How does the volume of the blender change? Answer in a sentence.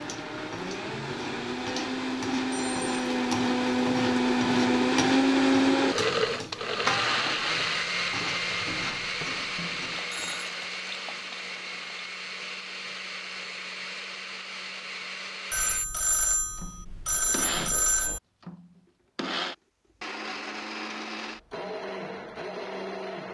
The loudness of the blender goes down.